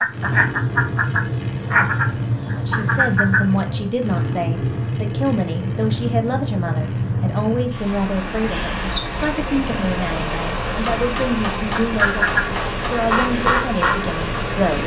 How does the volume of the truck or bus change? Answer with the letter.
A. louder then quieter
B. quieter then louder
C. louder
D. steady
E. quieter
D.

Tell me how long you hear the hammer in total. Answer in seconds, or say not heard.
2 s.